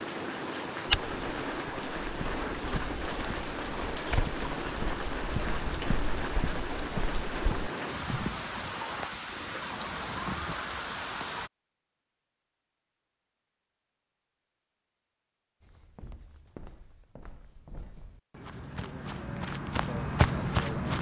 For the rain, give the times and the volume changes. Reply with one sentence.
You can hear the rain from 0.0 to 11.5 s, at a steady volume.